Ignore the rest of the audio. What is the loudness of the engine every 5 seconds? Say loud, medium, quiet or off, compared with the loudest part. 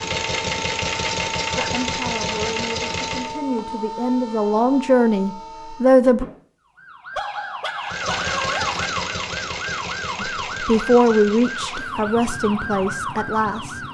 loud, loud, medium.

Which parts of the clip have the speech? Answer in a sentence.
You can hear the speech from 1.6 to 6.2 s and from 10.2 to 13.8 s.